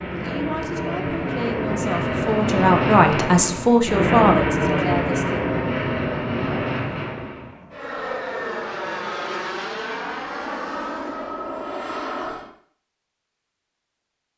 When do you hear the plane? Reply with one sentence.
You can hear the plane from 0.0 to 12.5 s.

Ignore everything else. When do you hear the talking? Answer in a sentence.
You can hear the talking from 0.1 to 5.3 s.